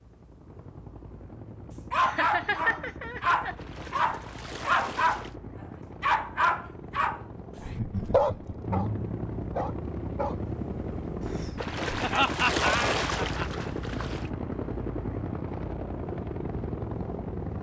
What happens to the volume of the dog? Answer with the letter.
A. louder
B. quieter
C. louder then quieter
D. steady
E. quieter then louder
B.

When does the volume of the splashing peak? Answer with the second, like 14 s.
13 s.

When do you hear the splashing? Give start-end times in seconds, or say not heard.
3.5-5.3, 11.6-14.3.